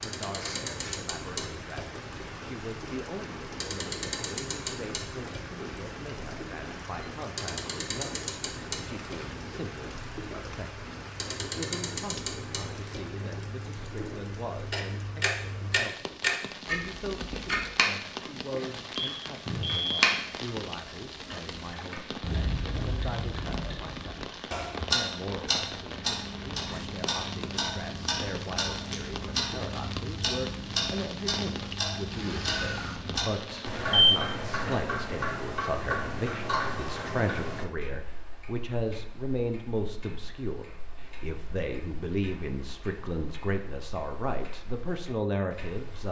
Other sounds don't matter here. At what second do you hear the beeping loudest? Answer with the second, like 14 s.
34 s.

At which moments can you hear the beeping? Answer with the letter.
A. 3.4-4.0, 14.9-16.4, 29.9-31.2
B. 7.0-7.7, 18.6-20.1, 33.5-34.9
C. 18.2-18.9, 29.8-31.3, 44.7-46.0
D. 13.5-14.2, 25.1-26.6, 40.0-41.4
B.